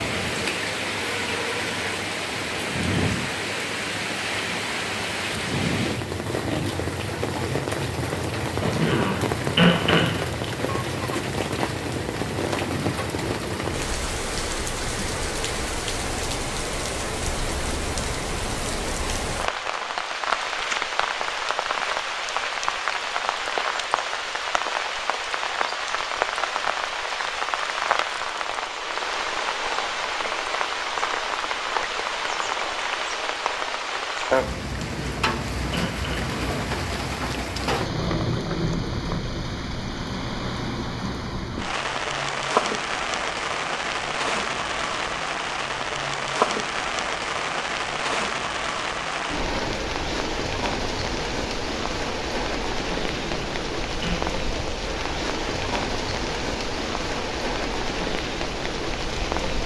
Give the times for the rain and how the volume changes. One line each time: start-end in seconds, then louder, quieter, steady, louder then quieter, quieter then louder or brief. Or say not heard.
0.0-59.6 steady.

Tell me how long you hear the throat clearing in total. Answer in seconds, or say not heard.
5 s.